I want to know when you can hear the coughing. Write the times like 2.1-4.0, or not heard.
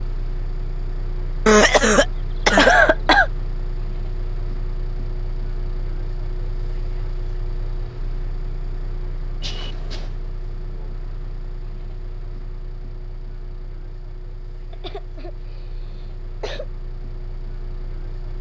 1.4-3.3, 9.4-10.1, 14.7-16.6.